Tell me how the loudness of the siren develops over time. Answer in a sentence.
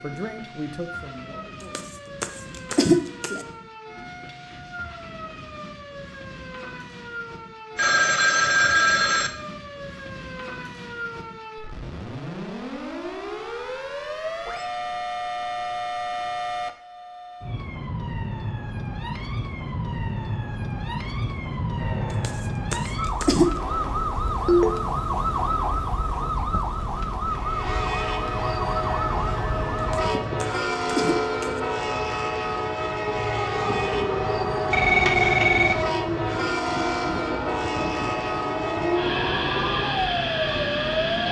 The loudness of the siren goes up.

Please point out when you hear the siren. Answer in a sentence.
You can hear the siren from 0.0 to 41.2 s.